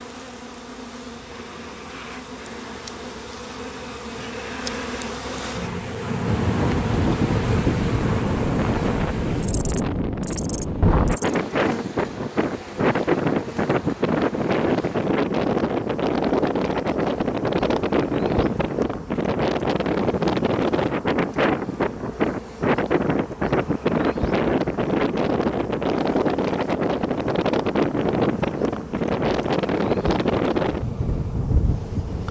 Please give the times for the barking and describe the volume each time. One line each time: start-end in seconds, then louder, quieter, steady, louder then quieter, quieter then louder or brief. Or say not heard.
not heard.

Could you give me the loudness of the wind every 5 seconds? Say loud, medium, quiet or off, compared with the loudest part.
off, loud, loud, loud, loud, loud, loud.